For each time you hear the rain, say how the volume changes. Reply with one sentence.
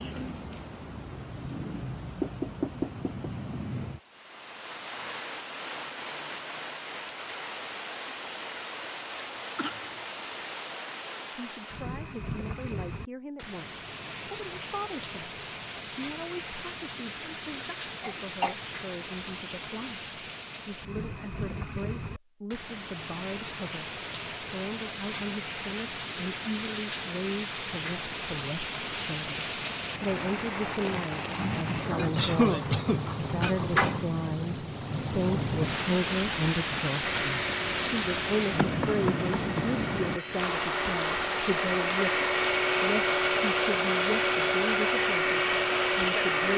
The rain can be heard from 0.0 to 46.5 s, getting louder.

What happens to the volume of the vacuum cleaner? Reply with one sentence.
The volume of the vacuum cleaner goes up.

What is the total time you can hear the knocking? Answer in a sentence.
You can hear the knocking for 2 seconds altogether.